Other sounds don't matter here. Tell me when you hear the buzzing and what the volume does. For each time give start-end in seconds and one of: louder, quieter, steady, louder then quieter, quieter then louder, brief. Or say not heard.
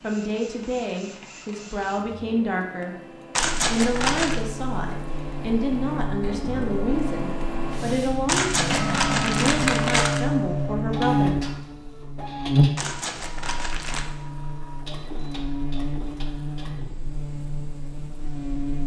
3.4-18.8 louder then quieter.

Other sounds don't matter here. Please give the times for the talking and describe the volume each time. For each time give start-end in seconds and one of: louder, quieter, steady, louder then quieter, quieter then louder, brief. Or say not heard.
0.0-11.3 steady.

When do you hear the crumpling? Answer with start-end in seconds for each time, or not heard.
3.4-4.4, 8.2-10.2, 12.8-14.1.